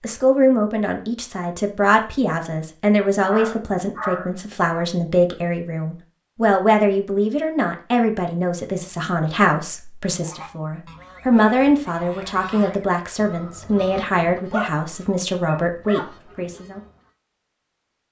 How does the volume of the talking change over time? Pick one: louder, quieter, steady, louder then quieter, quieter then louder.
steady.